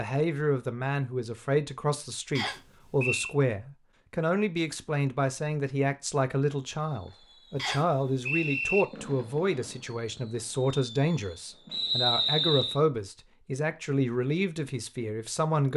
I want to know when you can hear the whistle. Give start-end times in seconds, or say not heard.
2.4-3.3, 7.5-8.8, 11.7-12.8.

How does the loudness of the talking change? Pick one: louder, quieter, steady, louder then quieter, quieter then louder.
steady.